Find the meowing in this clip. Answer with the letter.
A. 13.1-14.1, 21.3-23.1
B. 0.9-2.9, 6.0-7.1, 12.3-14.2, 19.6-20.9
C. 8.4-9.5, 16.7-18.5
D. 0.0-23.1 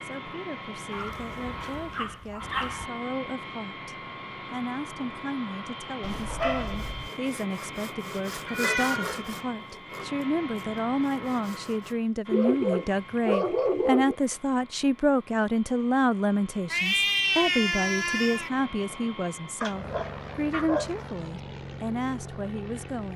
C.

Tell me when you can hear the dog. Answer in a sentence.
The dog can be heard from 0.9 to 2.9 s, from 6.0 to 7.1 s, from 12.3 to 14.2 s and from 19.6 to 20.9 s.